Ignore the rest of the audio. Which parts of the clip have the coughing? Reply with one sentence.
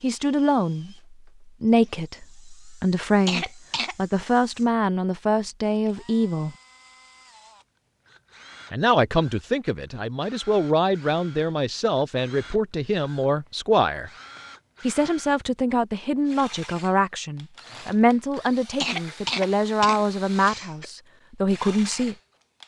You can hear the coughing from 3.2 to 4.0 s and from 18.8 to 20.9 s.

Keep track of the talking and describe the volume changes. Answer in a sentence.
The loudness of the talking stays about the same.